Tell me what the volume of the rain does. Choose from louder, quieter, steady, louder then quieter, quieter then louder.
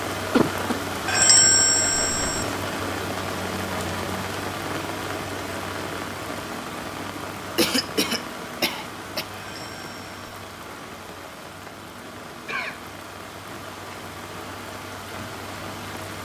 quieter.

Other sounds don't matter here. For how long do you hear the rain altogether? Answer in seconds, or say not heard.
16 s.